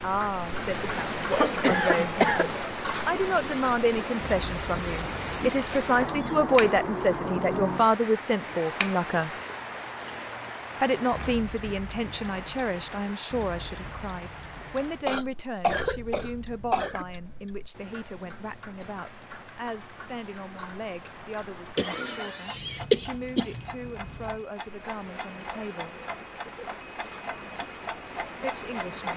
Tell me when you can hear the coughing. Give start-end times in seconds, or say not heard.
1.3-2.7, 15.1-17.1, 21.8-23.6.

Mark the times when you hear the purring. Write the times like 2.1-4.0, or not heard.
not heard.